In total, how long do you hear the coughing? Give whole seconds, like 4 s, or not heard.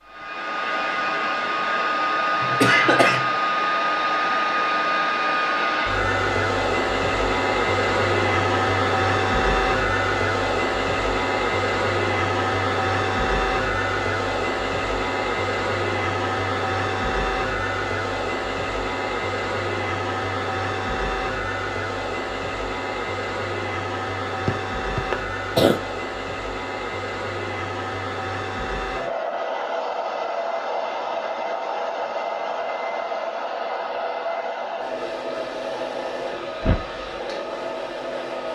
2 s.